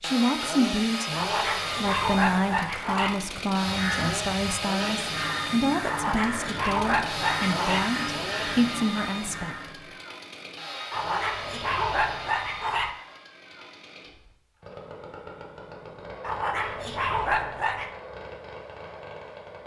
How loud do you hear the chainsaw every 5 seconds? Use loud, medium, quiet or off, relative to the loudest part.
loud, loud, medium, medium.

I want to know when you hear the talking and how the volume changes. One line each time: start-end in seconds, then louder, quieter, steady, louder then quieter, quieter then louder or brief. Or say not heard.
0.0-9.6 steady.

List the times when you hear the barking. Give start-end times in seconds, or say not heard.
1.1-3.1, 5.8-7.8, 10.9-12.9, 16.2-17.9.